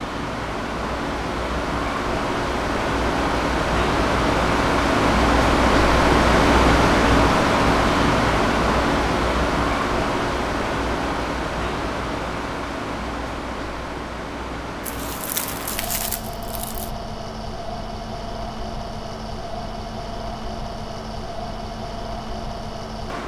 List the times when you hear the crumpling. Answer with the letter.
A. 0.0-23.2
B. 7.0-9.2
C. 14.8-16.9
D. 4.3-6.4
C.